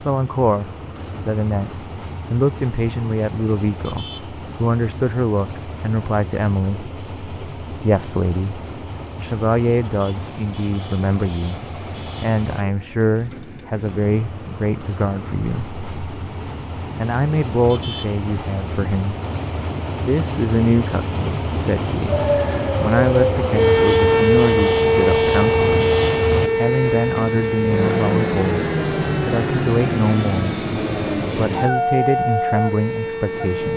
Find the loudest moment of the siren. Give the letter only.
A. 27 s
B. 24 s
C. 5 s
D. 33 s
B.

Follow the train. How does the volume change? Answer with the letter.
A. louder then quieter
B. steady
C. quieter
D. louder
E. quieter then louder
D.